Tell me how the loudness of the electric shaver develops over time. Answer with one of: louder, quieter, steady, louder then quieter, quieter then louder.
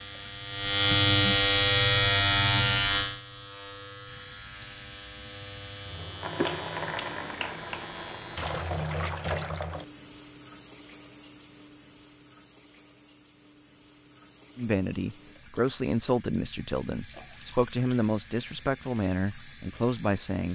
quieter.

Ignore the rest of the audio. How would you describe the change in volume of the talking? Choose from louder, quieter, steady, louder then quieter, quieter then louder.
steady.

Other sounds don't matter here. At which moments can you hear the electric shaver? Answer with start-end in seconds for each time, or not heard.
0.0-8.9.